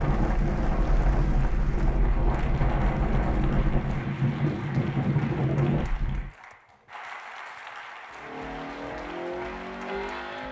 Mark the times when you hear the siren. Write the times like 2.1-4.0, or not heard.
not heard.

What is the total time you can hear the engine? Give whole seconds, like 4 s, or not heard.
2 s.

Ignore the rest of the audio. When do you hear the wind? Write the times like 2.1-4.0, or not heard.
0.0-6.3.